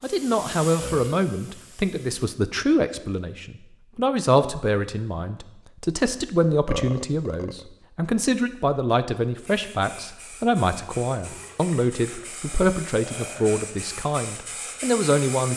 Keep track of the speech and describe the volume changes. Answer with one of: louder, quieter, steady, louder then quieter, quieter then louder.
steady.